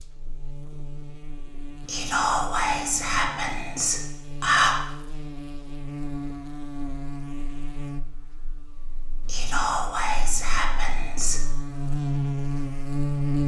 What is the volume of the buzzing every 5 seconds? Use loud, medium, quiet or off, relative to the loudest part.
quiet, medium, loud.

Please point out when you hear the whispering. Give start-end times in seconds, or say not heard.
1.9-4.8, 9.2-11.4.